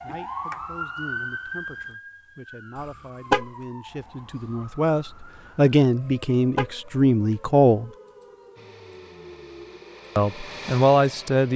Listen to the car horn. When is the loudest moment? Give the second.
3 s.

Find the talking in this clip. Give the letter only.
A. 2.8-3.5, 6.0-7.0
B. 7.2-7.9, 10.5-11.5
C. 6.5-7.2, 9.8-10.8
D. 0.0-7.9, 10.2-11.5
D.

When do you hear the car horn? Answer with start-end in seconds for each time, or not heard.
2.8-3.5, 6.0-7.0.